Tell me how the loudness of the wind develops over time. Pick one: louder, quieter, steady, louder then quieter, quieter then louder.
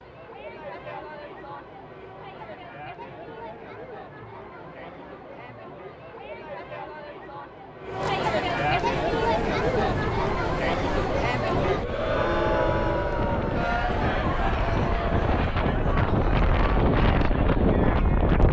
louder.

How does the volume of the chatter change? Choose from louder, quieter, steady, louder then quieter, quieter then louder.
louder then quieter.